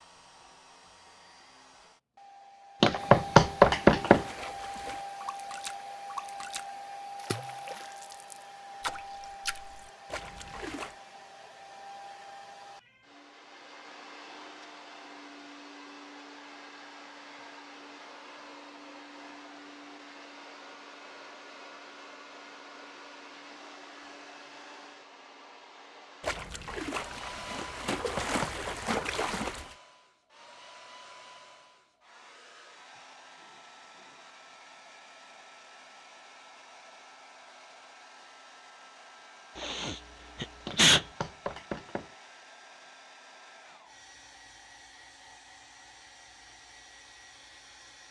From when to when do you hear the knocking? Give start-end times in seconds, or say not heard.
2.8-4.2, 27.9-28.7, 40.6-42.1.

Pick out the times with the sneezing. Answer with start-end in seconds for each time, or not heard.
39.5-41.0.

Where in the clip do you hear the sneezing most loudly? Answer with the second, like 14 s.
41 s.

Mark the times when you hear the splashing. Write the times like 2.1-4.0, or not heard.
4.0-10.9, 26.2-29.8.